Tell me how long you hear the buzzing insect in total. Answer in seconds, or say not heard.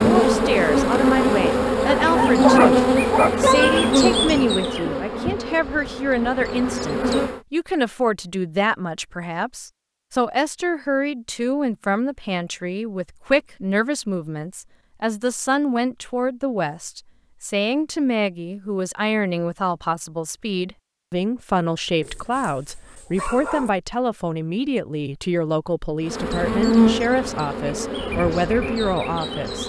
11 s.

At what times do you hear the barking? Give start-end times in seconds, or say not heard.
1.8-4.0, 22.0-23.7.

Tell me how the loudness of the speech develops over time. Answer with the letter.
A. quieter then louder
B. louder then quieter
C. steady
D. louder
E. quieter
C.